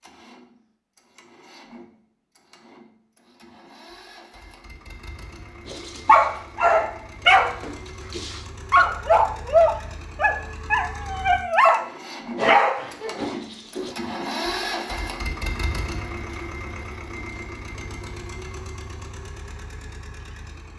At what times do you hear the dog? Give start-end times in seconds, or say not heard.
5.7-13.9.